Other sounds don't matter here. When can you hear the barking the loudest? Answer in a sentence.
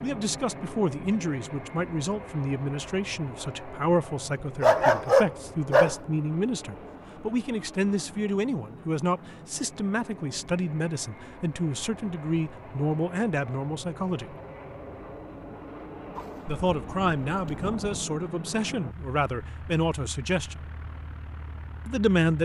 The volume of the barking peaks at 5 seconds.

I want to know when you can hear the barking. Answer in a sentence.
The barking can be heard from 4.4 to 6.0 s and from 16.1 to 18.1 s.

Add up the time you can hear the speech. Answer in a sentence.
The speech can be heard for 19 seconds in total.